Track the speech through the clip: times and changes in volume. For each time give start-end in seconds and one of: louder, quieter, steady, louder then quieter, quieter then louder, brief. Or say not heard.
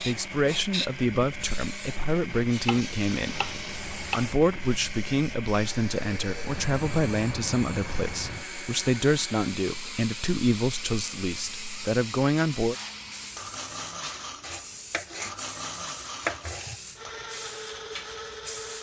0.0-12.8 steady.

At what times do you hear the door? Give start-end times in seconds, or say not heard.
not heard.